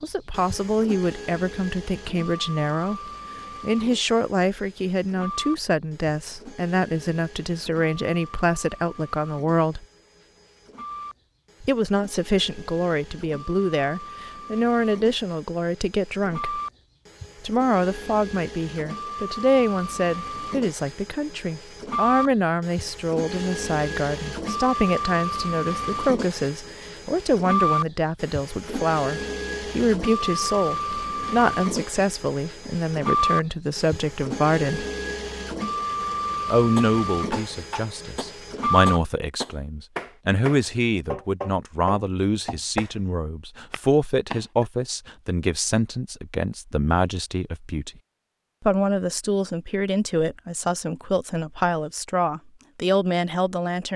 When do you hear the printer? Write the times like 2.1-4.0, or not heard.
0.0-39.0.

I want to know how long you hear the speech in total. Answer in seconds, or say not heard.
49 s.